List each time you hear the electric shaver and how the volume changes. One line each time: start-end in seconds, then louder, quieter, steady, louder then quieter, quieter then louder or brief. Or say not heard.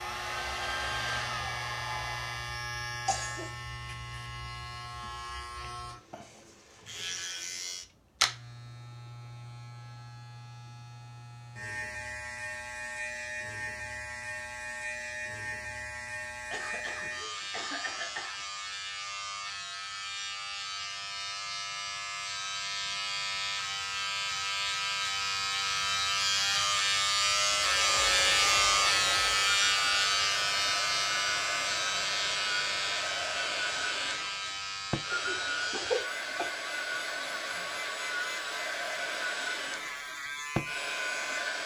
0.0-41.6 louder then quieter.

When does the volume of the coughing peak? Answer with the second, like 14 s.
36 s.